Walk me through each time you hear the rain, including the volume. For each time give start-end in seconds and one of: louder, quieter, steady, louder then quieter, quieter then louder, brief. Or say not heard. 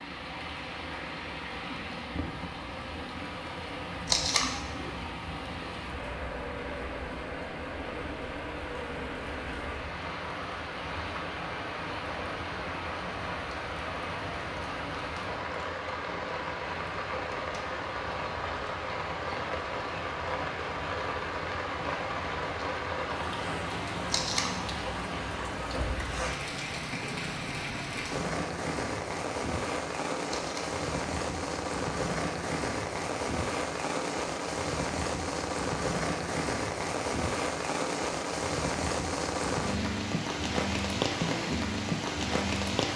0.0-42.9 louder.